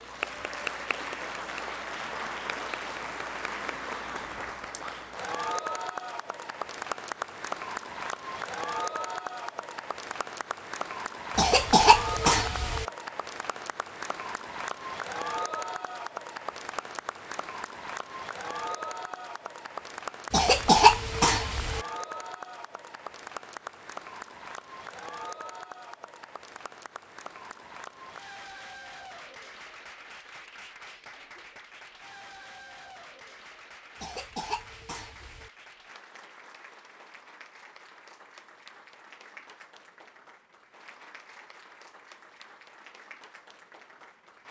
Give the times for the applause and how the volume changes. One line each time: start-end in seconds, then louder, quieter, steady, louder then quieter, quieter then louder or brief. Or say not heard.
0.0-44.4 quieter.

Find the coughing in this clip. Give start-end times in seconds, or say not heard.
11.3-12.8, 20.3-21.8, 34.0-35.5.